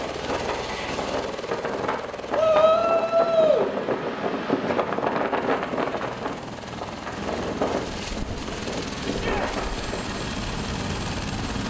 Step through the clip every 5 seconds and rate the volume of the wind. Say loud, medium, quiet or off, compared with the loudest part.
loud, loud, medium.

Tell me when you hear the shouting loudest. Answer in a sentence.
The volume of the shouting peaks at 3 seconds.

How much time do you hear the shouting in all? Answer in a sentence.
The shouting can be heard for 2 seconds in total.